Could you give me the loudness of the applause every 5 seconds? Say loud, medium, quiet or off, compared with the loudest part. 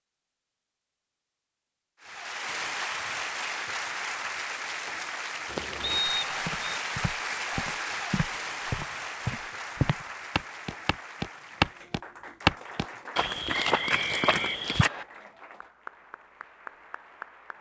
loud, loud, medium, quiet.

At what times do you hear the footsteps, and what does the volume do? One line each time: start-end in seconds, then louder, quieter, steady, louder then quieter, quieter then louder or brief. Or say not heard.
5.5-14.9 louder then quieter.